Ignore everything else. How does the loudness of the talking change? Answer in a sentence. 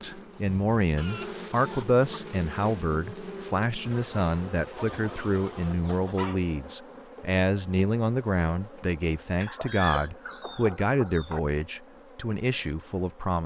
The volume of the talking stays about the same.